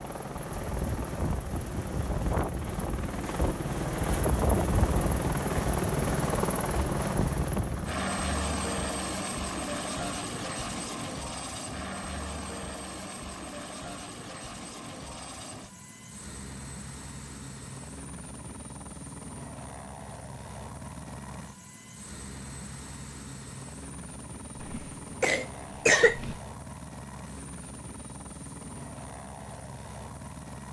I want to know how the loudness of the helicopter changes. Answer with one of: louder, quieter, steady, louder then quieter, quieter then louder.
quieter.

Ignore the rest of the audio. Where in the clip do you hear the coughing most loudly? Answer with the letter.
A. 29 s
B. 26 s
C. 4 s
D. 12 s
B.